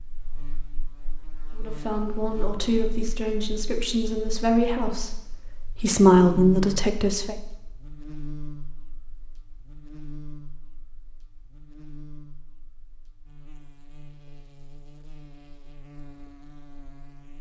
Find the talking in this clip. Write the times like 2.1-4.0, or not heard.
1.6-7.3.